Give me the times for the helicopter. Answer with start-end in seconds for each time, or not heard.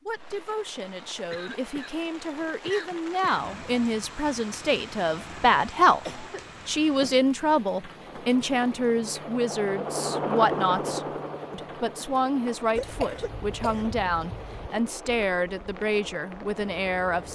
7.8-17.3.